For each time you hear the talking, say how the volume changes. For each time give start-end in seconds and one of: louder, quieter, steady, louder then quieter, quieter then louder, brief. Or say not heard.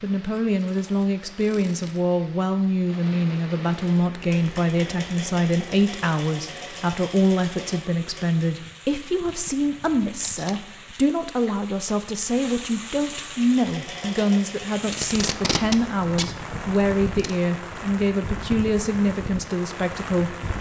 0.0-20.4 steady.